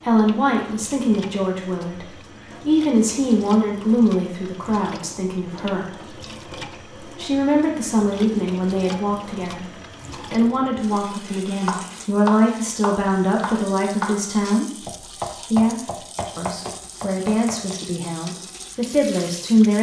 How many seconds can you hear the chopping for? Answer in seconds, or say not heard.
6 s.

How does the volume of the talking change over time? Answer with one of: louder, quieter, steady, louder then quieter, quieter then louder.
steady.